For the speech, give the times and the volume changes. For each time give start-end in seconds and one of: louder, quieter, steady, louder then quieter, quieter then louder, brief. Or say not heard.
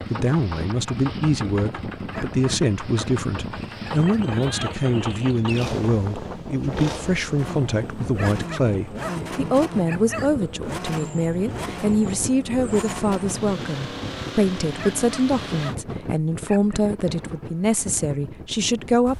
0.1-19.1 steady.